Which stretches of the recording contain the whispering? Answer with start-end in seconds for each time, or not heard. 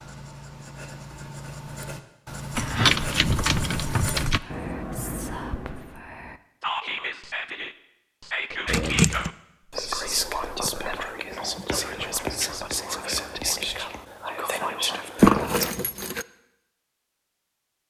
4.2-15.8.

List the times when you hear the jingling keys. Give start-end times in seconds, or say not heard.
2.5-4.4, 8.7-9.3, 15.2-16.2.